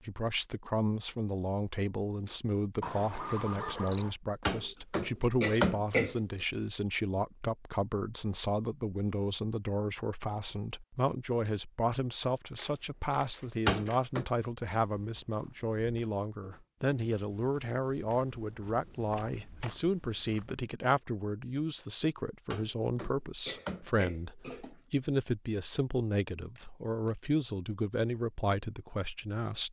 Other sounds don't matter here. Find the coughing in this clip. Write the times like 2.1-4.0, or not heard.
4.5-6.2, 13.7-14.2, 22.5-24.8.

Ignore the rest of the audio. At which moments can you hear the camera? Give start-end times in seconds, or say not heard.
2.8-4.2, 12.6-14.1, 26.6-27.2.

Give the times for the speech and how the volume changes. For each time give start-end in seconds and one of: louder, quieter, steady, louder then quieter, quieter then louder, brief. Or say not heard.
0.1-29.6 steady.